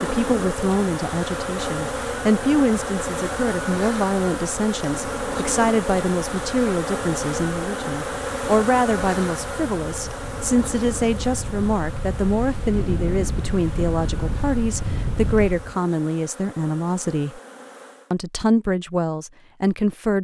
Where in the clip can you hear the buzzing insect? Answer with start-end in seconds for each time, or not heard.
0.0-18.1.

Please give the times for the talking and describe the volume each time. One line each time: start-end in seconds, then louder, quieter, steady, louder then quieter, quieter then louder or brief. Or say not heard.
0.0-17.4 steady
18.1-20.1 brief.